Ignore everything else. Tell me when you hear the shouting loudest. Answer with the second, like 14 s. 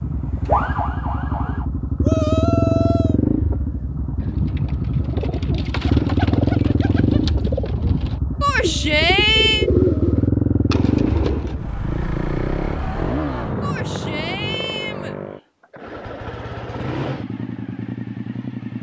9 s.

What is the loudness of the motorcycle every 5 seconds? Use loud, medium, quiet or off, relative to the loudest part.
loud, loud, loud, medium.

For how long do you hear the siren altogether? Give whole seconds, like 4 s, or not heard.
2 s.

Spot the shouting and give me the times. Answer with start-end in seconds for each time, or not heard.
2.0-3.2, 8.4-9.7, 13.6-15.2.